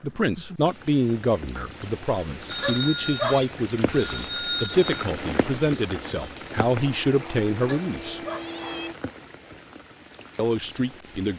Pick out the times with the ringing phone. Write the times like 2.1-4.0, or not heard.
2.5-4.9.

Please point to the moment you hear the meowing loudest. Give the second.
3 s.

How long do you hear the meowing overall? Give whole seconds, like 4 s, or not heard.
2 s.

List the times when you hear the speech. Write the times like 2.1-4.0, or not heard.
0.0-8.2, 10.3-11.3.